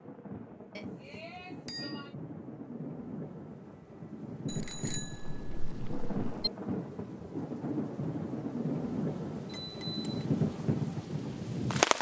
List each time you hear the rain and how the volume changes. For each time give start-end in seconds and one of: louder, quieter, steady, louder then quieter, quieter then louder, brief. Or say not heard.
0.0-11.9 louder.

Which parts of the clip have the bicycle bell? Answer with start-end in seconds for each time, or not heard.
0.8-2.1, 4.5-6.5, 9.5-10.1.